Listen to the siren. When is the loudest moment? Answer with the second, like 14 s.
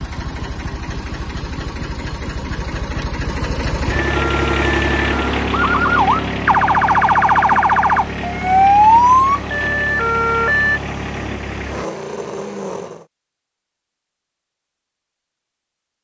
9 s.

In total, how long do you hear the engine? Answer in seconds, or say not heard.
13 s.